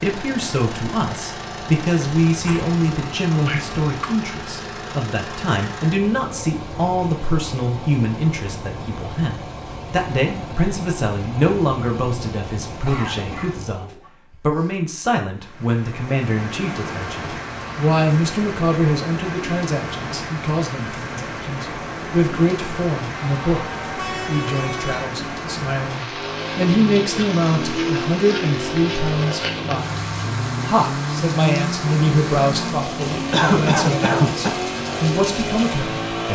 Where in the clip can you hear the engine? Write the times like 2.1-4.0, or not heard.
0.0-13.9, 25.9-36.3.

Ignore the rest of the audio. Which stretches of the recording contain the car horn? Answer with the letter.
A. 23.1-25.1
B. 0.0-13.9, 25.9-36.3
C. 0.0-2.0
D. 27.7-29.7
A.